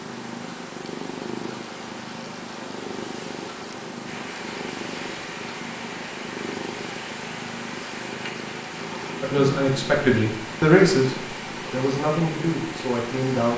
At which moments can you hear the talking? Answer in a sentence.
You can hear the talking from 9.2 to 13.5 s.